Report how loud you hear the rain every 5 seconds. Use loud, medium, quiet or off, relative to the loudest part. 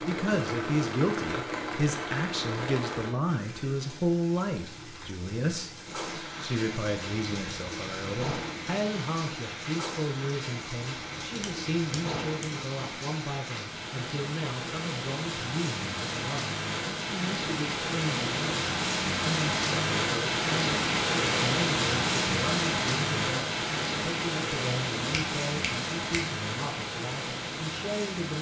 medium, medium, medium, loud, loud, medium.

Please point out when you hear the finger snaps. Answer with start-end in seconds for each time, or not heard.
11.4-12.5, 25.1-26.4.